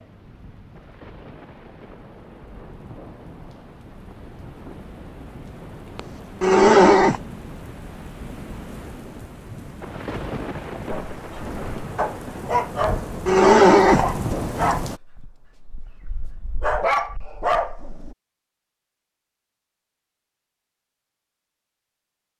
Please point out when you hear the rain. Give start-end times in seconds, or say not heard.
0.0-15.0.